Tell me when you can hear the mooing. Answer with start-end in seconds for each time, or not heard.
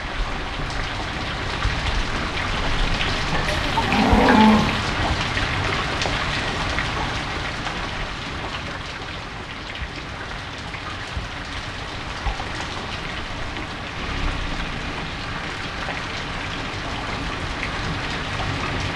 3.5-4.8.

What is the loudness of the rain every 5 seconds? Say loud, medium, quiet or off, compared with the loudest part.
loud, loud, medium, loud.